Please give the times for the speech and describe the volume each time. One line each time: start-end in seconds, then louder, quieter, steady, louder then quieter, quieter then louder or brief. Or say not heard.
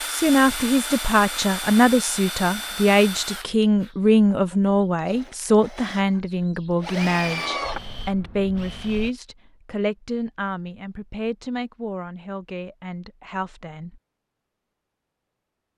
0.1-14.0 quieter.